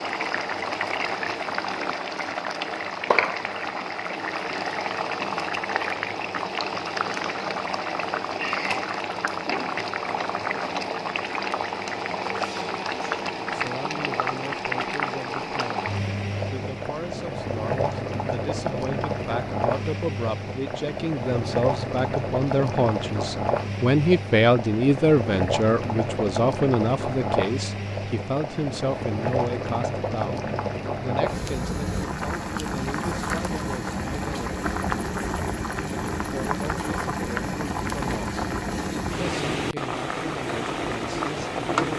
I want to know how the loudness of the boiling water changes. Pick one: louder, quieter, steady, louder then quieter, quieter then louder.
steady.